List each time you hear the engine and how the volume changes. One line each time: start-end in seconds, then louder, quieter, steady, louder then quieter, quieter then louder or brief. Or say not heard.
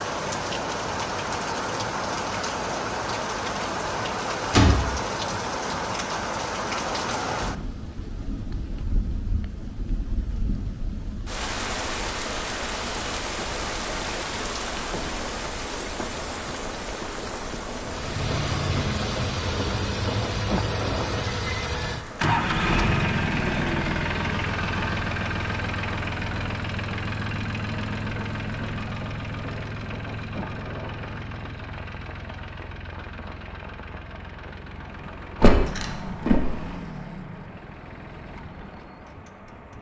17.8-39.7 quieter.